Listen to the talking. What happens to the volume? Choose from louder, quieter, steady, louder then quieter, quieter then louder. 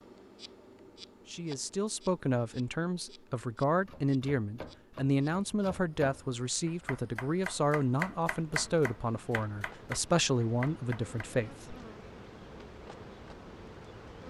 steady.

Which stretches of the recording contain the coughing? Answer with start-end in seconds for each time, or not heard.
not heard.